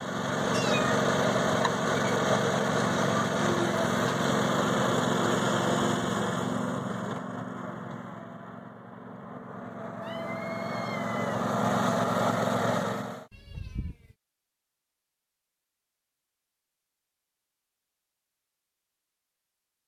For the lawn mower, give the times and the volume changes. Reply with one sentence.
You can hear the lawn mower from 0.0 to 13.2 s, getting quieter then louder.